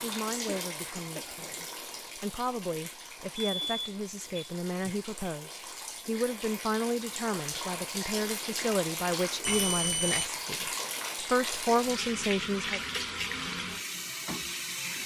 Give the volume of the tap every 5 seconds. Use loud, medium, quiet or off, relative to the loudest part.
medium, loud, loud.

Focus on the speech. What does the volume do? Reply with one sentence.
The loudness of the speech goes up.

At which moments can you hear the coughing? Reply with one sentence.
The coughing can be heard from 0.5 to 1.6 s.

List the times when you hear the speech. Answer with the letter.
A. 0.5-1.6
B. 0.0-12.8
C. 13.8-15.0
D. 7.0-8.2
B.